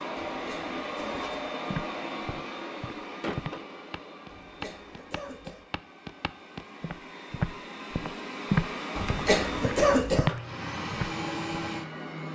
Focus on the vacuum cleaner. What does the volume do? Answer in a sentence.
The volume of the vacuum cleaner goes down, then up.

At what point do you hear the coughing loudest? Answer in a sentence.
The volume of the coughing peaks at 10 seconds.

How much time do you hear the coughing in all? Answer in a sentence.
The coughing can be heard for 4 seconds in total.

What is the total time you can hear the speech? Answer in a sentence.
You can't hear the speech here.